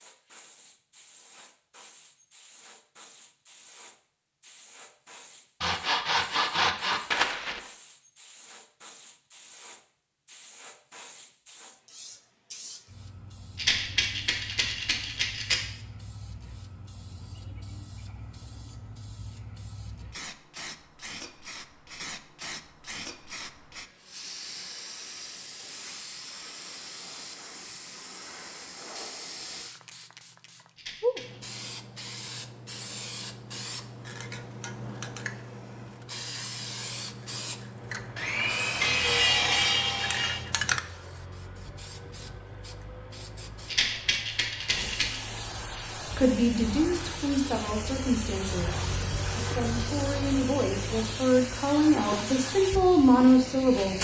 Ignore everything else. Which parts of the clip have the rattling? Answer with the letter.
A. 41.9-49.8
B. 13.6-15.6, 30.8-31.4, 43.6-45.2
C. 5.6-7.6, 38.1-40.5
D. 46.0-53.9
B.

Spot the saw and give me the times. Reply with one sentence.
You can hear the saw from 5.6 to 7.6 s and from 38.1 to 40.5 s.